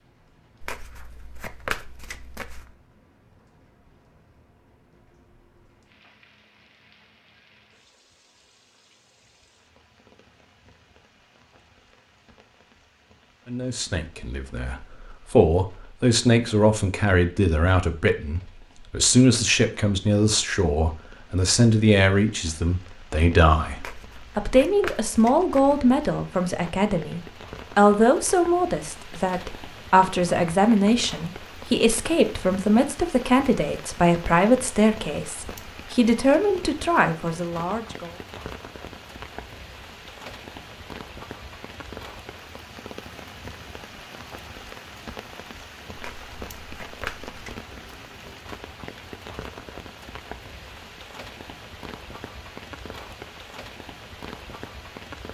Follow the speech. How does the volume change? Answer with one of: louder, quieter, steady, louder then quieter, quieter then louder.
steady.